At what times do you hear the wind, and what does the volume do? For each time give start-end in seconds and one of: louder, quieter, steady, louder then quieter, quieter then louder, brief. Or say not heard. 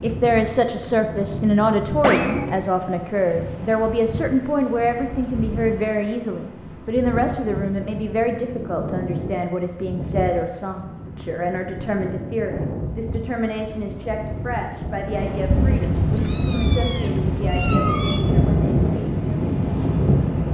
0.0-20.4 louder.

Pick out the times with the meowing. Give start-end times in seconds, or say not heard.
2.0-2.6, 15.9-18.2.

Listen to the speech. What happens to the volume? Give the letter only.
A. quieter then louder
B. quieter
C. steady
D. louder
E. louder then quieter
B.